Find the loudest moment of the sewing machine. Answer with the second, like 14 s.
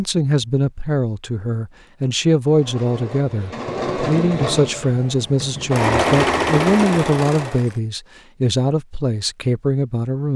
6 s.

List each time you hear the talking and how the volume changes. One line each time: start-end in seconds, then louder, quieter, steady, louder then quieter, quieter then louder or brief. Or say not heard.
0.0-10.3 steady.